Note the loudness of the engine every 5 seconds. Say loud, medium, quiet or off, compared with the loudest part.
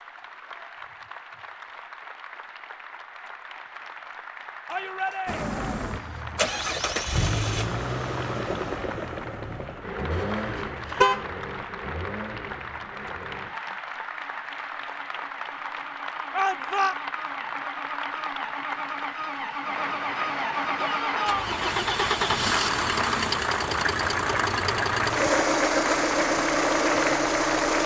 off, medium, quiet, quiet, loud, loud.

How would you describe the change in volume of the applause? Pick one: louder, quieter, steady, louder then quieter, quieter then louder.
louder.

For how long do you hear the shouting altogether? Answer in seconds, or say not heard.
2 s.